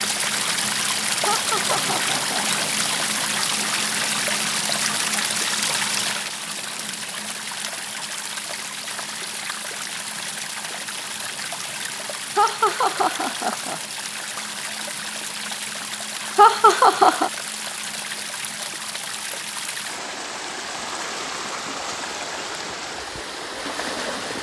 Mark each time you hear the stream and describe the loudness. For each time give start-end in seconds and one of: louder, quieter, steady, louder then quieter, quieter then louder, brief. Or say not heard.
0.0-24.3 quieter.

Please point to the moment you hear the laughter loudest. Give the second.
17 s.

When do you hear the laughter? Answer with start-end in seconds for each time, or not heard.
1.2-2.6, 12.3-13.8, 16.4-17.3.